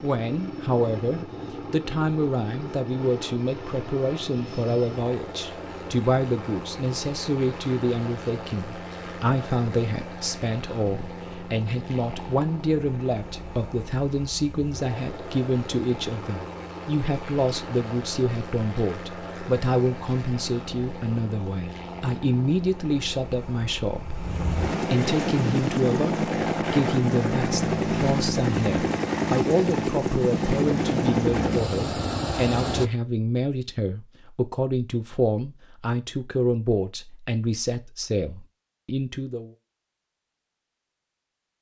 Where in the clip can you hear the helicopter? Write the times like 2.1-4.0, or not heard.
0.0-32.9.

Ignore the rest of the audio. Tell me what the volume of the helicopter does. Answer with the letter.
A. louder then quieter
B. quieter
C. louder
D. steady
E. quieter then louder
C.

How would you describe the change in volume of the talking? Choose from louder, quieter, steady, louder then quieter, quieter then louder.
steady.